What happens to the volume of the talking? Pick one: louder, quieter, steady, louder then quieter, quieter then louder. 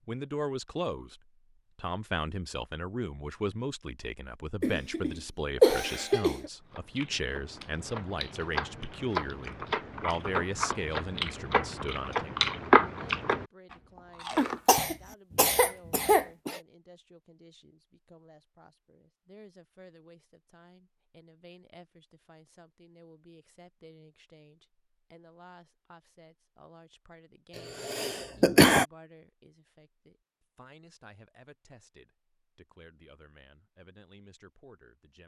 quieter.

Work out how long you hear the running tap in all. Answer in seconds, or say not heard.
not heard.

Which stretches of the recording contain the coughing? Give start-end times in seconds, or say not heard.
4.6-6.5, 14.3-16.6, 27.6-28.9.